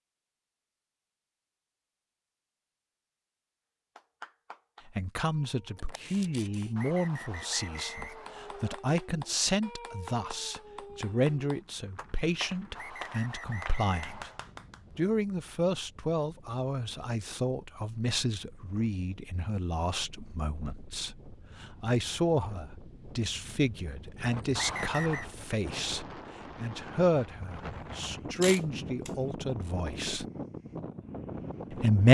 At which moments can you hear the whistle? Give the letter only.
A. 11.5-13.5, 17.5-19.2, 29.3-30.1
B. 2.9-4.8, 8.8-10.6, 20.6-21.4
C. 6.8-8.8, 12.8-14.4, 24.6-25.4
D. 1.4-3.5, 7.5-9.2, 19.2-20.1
C.